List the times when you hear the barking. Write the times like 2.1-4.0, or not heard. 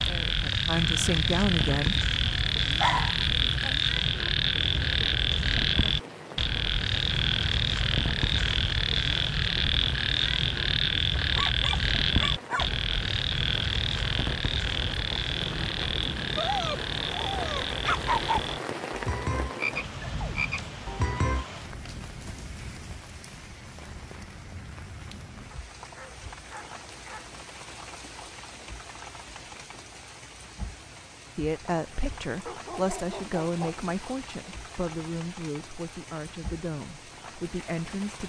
2.8-3.8, 11.2-12.7, 16.4-18.4, 25.5-27.2, 32.5-33.9.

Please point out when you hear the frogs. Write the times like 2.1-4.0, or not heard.
0.0-21.5.